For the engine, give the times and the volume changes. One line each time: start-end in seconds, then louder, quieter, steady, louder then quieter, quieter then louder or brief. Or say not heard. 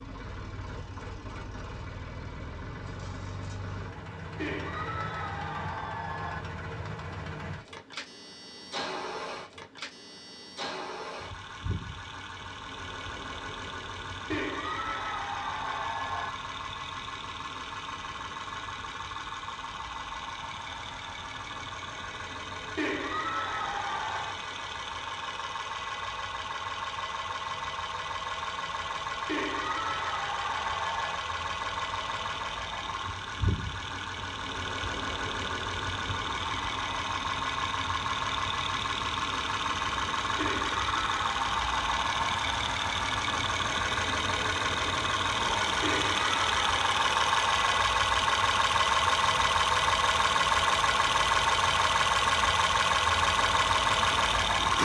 0.0-54.8 louder.